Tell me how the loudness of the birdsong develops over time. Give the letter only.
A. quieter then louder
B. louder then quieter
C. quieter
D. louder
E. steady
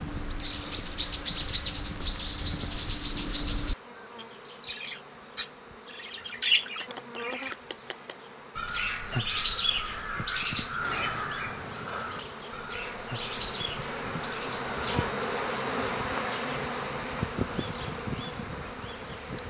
C.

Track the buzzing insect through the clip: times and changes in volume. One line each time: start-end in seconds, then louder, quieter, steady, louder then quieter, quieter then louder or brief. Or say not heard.
0.0-19.4 louder.